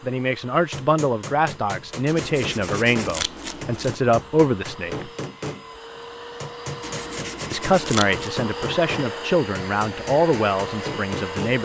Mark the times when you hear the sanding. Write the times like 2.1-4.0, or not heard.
2.0-4.0, 6.8-8.3.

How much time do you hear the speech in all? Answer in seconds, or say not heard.
9 s.